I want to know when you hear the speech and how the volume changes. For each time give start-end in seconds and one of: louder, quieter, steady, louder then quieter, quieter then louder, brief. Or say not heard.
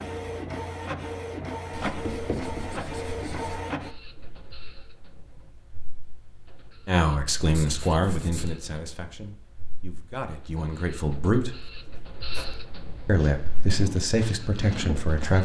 6.8-11.6 quieter then louder
13.1-15.4 brief.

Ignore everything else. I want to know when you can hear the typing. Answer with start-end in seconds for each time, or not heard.
not heard.